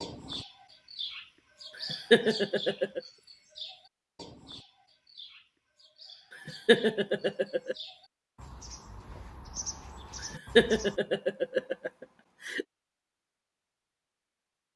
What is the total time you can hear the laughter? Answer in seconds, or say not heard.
5 s.